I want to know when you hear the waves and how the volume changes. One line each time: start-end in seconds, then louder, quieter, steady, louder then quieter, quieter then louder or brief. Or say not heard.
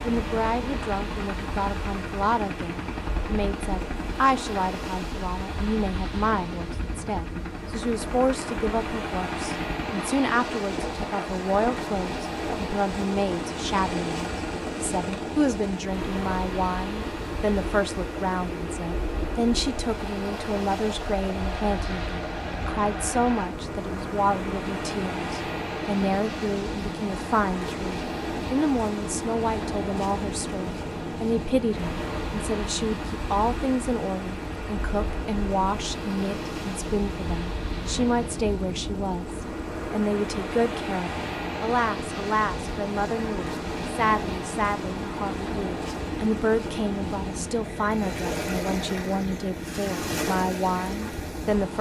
0.0-51.7 steady.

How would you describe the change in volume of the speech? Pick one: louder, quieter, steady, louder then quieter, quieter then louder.
steady.